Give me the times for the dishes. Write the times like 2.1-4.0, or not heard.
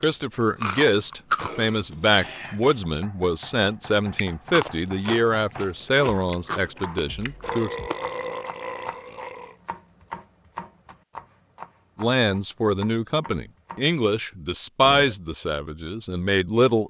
not heard.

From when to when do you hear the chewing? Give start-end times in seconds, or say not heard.
0.0-1.9, 4.1-8.2.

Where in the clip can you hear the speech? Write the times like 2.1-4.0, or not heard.
0.0-7.8, 11.9-16.8.